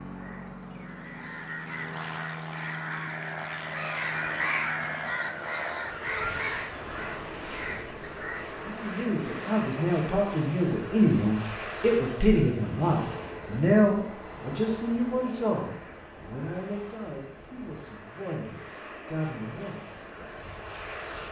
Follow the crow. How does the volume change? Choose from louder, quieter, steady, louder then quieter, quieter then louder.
louder then quieter.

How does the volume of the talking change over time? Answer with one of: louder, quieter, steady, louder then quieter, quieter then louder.
quieter.